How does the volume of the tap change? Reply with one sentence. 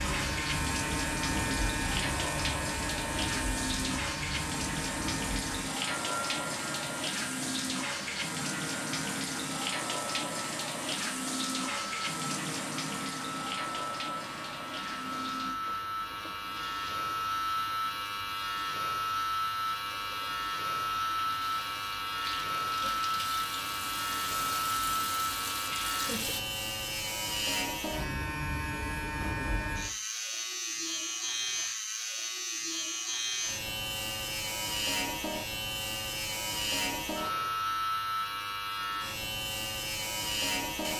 The loudness of the tap goes down, then up.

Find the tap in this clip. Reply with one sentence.
The tap can be heard from 0.0 to 26.4 s.